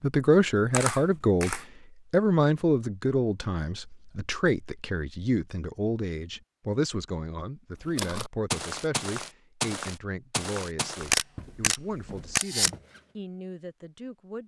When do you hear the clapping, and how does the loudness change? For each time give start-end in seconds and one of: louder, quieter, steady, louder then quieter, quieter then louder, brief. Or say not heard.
not heard.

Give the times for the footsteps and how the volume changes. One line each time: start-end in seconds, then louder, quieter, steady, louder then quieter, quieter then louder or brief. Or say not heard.
7.8-13.0 quieter.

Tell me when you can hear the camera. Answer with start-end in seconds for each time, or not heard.
0.7-1.6, 11.0-12.7.